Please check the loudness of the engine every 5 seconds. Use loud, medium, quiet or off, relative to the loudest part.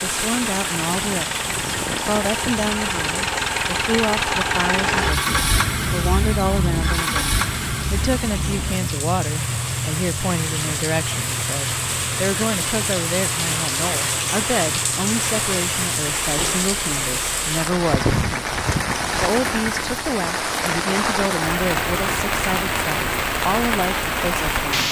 loud, loud, medium, medium, medium.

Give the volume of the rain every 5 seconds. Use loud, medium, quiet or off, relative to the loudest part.
medium, medium, loud, loud, loud.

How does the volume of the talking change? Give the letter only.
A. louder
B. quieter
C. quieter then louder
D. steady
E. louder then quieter
D.